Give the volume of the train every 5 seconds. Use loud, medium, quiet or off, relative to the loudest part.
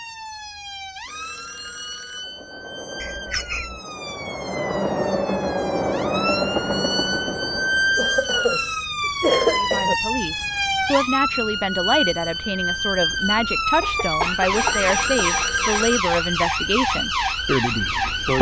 medium, loud, off, off.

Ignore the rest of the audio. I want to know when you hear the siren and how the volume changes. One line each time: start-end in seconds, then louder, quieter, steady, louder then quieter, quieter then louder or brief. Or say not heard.
0.0-18.3 louder.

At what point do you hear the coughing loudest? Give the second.
9 s.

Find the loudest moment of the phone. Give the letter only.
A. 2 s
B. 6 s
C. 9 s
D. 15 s
D.